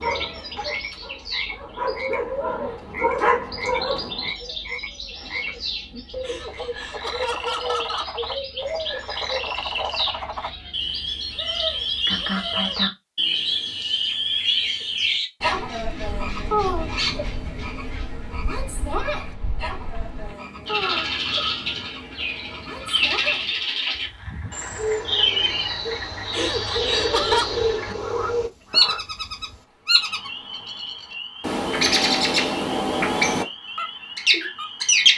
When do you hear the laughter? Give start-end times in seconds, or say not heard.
6.2-8.2, 26.3-27.5.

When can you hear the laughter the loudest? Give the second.
27 s.